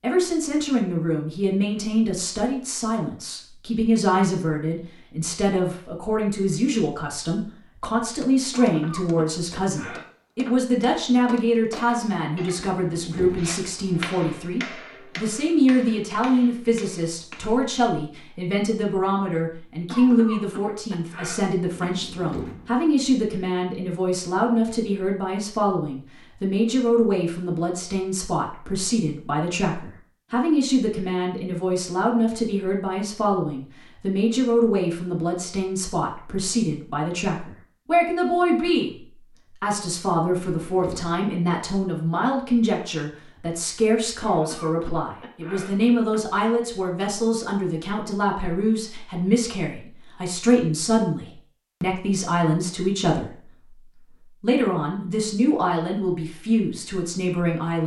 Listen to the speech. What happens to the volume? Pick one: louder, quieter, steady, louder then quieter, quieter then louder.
steady.